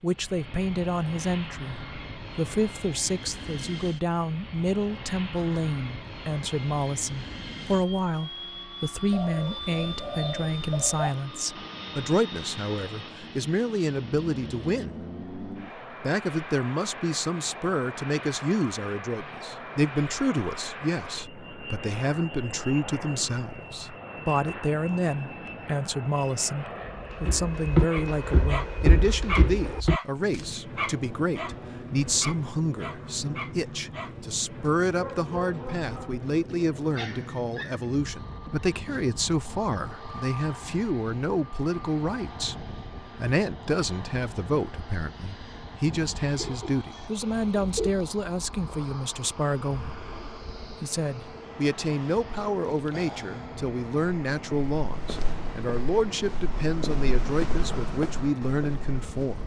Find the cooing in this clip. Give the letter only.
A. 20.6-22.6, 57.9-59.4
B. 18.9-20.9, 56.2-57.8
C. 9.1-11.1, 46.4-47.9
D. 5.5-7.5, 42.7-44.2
C.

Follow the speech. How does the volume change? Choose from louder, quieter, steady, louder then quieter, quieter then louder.
steady.